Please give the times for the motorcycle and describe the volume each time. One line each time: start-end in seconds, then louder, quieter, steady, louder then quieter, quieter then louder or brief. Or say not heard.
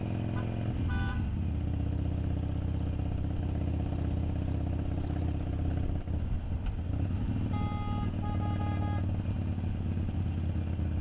0.0-10.9 steady.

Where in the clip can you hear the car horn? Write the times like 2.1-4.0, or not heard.
0.3-1.3, 7.5-9.1.